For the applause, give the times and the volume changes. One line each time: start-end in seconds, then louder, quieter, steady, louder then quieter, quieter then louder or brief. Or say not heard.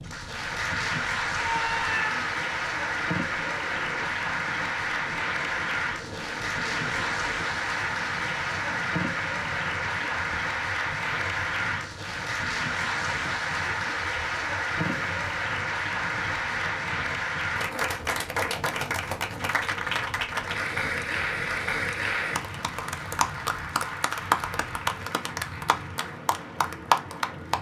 0.0-27.5 steady.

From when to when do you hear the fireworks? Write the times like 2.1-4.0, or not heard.
not heard.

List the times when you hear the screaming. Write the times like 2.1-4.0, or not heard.
1.4-2.2.